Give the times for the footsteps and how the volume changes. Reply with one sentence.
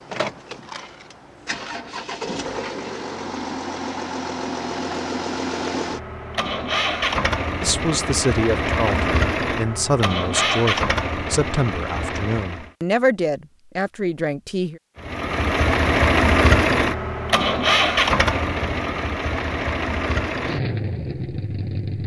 The footsteps can't be heard in this clip.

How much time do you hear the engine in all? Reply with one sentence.
The engine can be heard for 20 seconds in total.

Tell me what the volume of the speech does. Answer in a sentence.
The loudness of the speech stays about the same.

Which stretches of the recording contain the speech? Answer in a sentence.
The speech can be heard from 7.6 to 14.8 s.